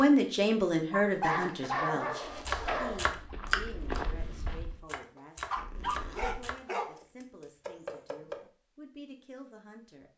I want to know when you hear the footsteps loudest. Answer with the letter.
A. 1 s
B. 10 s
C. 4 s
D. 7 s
C.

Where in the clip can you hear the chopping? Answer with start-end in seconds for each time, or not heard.
2.5-8.5.